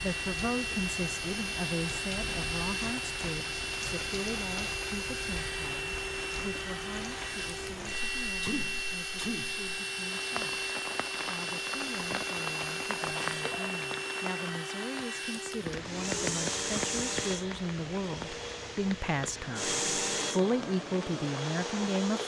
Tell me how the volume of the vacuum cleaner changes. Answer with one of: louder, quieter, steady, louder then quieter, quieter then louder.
steady.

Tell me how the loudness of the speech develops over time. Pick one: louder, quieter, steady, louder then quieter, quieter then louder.
quieter then louder.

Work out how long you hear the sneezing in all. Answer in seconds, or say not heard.
2 s.